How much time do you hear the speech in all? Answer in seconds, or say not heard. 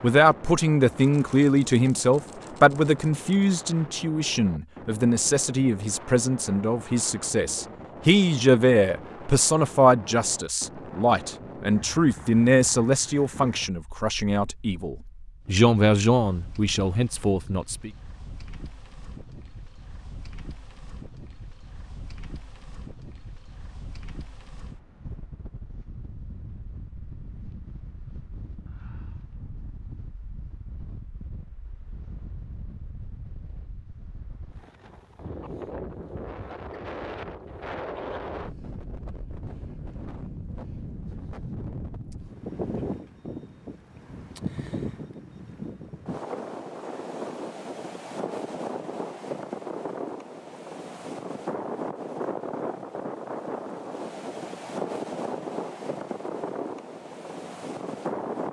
18 s.